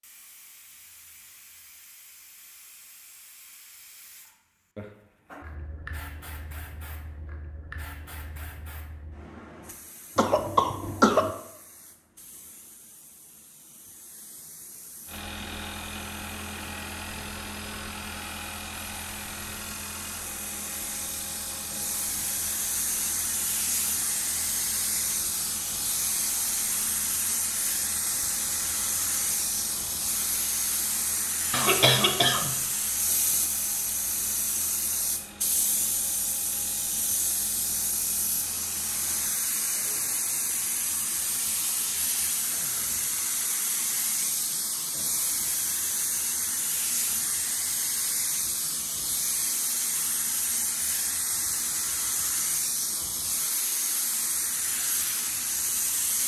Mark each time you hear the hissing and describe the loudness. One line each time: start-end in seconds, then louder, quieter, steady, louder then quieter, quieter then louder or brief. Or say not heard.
0.0-56.2 louder.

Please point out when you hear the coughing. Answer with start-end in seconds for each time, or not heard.
10.2-11.3, 31.5-32.5.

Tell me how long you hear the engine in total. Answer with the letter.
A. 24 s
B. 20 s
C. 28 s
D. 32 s
A.